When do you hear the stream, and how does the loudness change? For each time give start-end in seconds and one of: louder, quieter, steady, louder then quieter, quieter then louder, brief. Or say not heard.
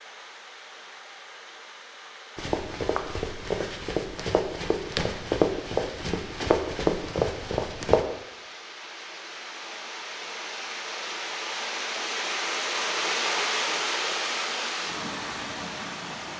0.0-16.3 louder.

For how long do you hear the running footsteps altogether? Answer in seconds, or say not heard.
6 s.